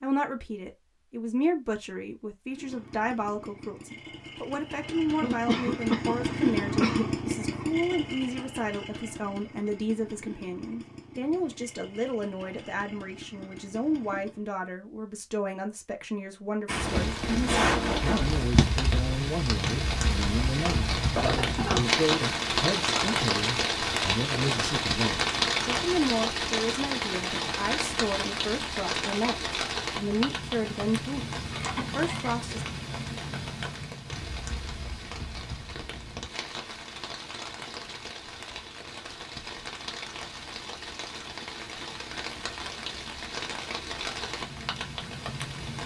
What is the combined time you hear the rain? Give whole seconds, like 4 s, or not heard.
29 s.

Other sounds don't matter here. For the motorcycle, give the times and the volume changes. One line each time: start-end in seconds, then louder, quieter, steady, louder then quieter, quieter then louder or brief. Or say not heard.
2.5-14.5 louder then quieter.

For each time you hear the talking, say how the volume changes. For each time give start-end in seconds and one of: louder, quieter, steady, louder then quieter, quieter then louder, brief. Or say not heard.
0.0-32.6 steady.